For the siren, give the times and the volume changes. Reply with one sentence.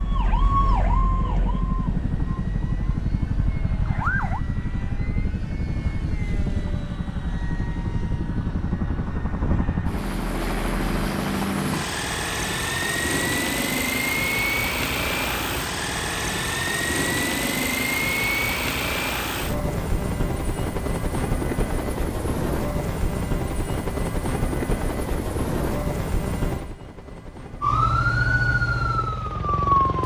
The siren can be heard from 0.0 to 4.4 s, getting quieter; and briefly from 27.6 to 30.0 s.